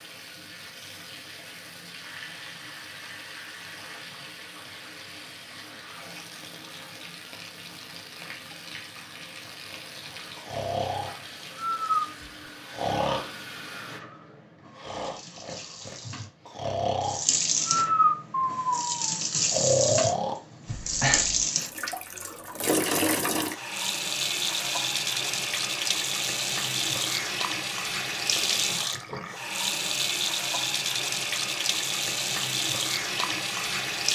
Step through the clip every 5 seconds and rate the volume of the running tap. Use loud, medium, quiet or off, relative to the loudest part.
quiet, quiet, quiet, loud, loud, loud, loud.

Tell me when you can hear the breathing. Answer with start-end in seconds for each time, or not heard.
10.3-21.4.